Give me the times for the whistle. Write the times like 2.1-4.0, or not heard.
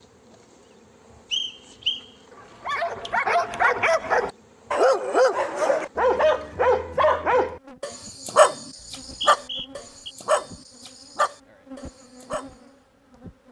1.3-2.0, 8.8-10.2.